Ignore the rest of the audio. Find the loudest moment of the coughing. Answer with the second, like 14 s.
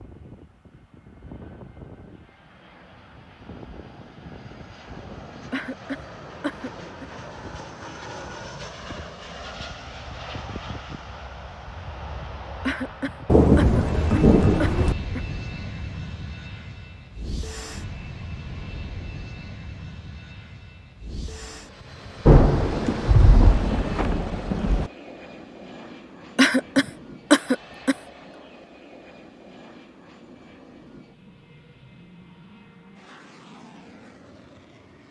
27 s.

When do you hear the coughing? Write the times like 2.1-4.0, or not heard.
5.5-7.0, 12.7-15.2, 26.4-27.9.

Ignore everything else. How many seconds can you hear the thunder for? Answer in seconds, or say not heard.
4 s.